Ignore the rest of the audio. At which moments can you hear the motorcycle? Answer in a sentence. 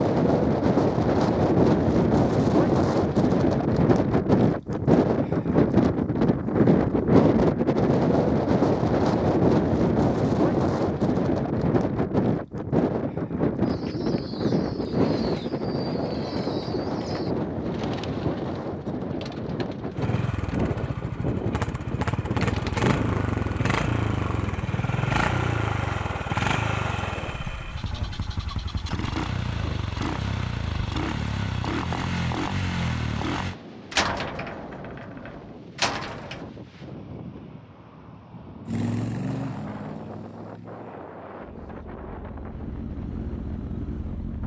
The motorcycle can be heard from 19.9 to 33.5 s and from 38.6 to 44.4 s.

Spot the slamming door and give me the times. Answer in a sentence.
The slamming door can be heard from 33.9 to 36.5 s.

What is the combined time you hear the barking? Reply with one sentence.
The barking can't be heard in this clip.